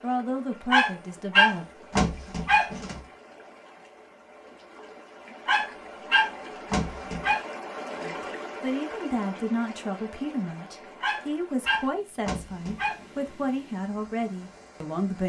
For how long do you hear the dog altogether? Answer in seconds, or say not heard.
6 s.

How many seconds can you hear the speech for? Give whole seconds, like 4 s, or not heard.
9 s.